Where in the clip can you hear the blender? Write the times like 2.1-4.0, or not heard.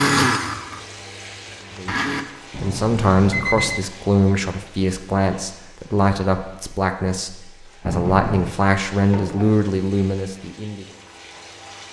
0.0-2.2.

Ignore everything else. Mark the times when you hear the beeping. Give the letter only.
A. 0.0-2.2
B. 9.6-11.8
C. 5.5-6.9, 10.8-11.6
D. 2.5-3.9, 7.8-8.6
D.